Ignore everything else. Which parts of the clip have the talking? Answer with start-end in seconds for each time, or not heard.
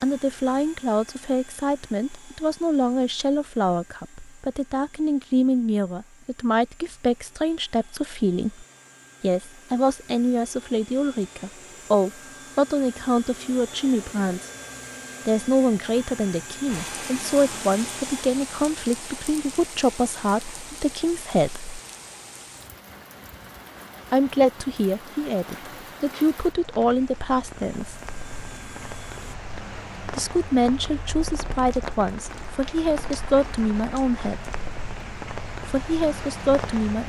0.0-14.4, 15.2-21.7, 24.1-28.1, 30.1-34.5, 35.7-37.0.